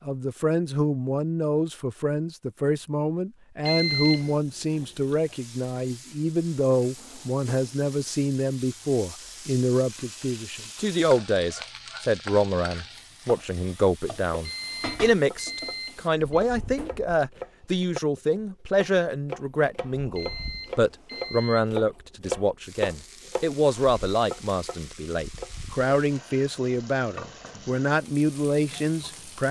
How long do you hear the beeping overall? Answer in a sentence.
You can hear the beeping for 4 seconds altogether.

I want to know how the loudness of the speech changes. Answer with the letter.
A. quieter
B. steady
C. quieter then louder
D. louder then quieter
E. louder
B.